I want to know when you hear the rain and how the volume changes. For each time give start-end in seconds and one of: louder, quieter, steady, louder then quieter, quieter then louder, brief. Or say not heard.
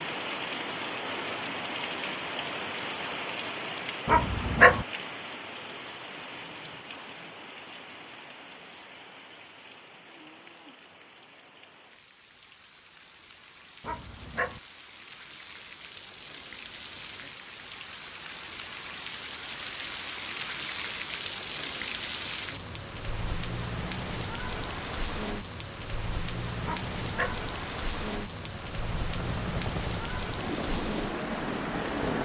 0.0-32.2 quieter then louder.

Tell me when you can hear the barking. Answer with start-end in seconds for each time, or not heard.
4.0-4.8, 13.8-14.6, 26.6-27.4.